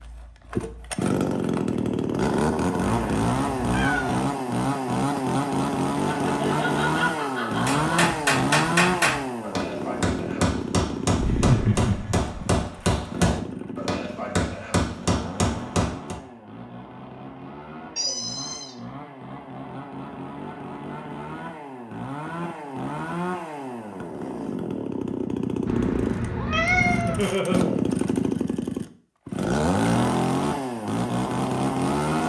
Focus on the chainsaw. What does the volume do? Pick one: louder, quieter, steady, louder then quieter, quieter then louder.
quieter then louder.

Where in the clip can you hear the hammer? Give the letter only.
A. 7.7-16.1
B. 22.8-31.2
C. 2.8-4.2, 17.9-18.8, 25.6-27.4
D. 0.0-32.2
A.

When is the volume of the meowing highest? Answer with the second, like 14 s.
27 s.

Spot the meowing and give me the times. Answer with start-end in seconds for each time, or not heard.
2.8-4.2, 17.9-18.8, 25.6-27.4.